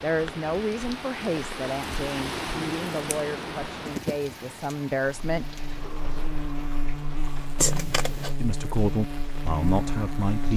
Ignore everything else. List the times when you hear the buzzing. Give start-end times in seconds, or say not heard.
5.2-10.5.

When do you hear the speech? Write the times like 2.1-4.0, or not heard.
0.0-5.5, 8.4-10.5.